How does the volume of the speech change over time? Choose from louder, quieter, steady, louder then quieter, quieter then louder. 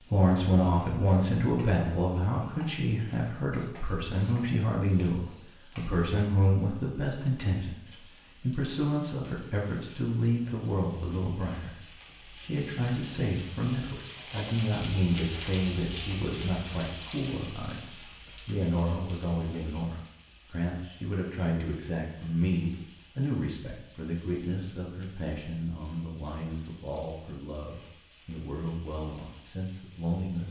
quieter.